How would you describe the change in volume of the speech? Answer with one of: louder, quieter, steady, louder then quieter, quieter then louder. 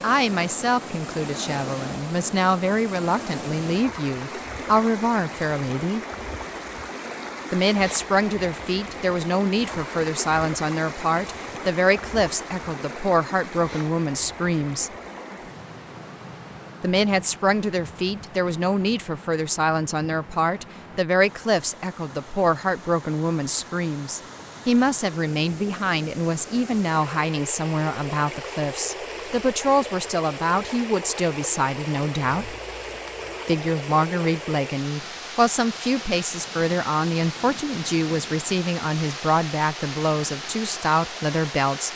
steady.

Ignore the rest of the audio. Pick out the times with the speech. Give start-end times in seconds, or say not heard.
0.0-6.0, 7.5-14.9, 16.8-32.5, 33.5-41.9.